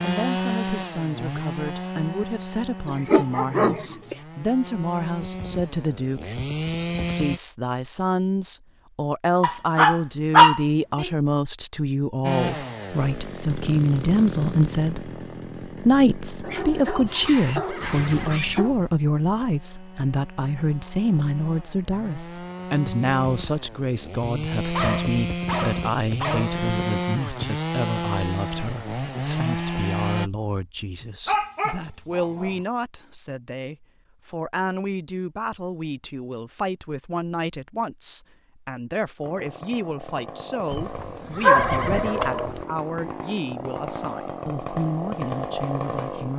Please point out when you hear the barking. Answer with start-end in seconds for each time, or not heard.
2.9-4.2, 9.4-11.1, 16.4-18.8, 24.8-26.6, 31.2-32.5, 41.4-42.5.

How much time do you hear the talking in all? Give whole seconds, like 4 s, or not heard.
46 s.